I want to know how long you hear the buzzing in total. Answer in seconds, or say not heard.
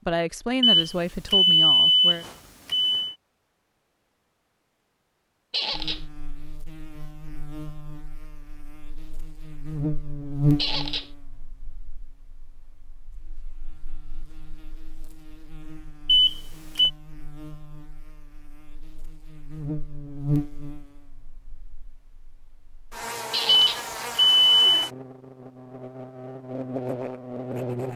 22 s.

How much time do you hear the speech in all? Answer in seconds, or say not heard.
2 s.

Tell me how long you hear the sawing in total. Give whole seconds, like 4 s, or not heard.
not heard.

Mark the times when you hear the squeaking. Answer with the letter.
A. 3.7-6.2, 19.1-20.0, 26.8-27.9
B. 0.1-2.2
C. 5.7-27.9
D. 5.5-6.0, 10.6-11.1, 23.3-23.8
D.